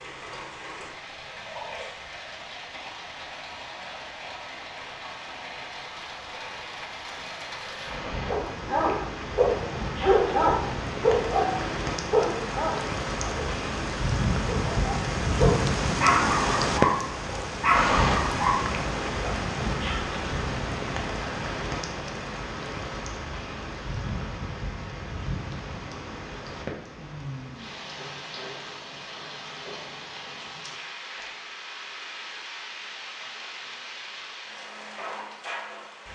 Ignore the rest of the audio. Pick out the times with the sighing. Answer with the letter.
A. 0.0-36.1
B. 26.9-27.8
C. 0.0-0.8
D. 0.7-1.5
B.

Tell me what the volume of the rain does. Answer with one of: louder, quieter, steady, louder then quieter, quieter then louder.
louder then quieter.